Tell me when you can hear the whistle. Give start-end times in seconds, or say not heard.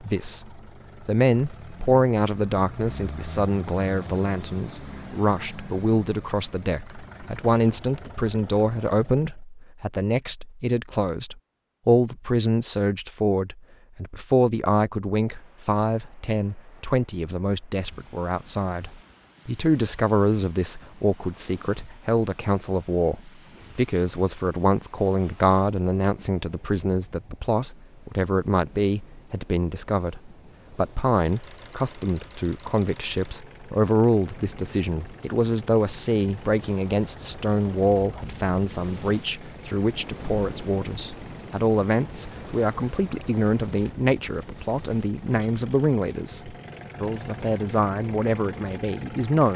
not heard.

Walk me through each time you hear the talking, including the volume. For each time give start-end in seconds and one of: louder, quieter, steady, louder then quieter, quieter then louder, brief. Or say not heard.
0.0-49.5 steady.